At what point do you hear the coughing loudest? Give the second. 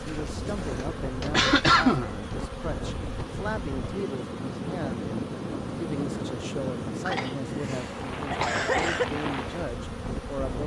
2 s.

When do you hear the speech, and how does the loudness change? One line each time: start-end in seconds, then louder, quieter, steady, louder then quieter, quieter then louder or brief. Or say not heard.
0.0-10.6 steady.